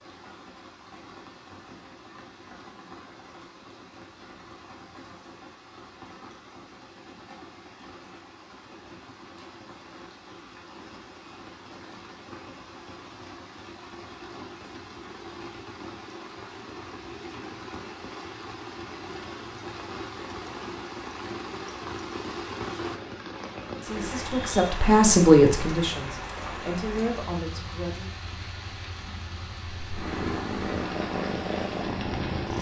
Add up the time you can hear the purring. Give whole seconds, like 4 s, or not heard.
3 s.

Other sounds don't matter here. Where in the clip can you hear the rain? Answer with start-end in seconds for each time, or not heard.
0.0-32.5.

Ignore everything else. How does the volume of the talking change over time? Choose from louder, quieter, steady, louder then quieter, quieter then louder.
louder then quieter.